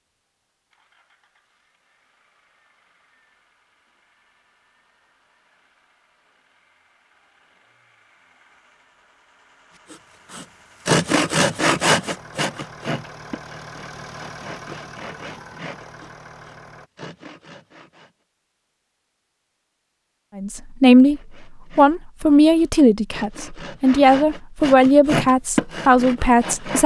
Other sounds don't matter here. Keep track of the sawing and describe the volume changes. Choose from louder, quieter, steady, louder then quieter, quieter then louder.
quieter then louder.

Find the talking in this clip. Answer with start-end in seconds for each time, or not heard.
20.4-26.8.